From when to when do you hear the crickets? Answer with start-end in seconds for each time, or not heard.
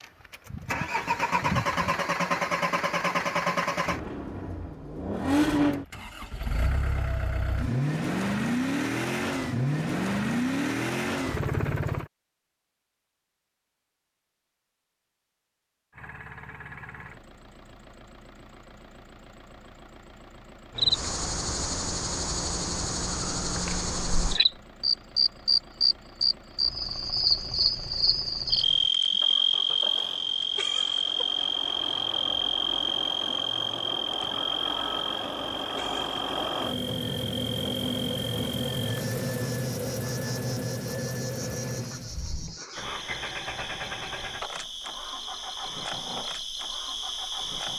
20.8-47.7.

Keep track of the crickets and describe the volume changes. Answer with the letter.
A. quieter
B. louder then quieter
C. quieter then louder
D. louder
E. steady
A.